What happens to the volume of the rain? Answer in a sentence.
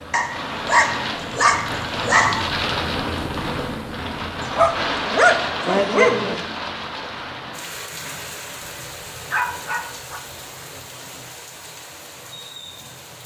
The volume of the rain goes down.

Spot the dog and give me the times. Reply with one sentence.
You can hear the dog from 0.1 to 2.5 s, from 4.4 to 6.4 s and from 9.3 to 10.2 s.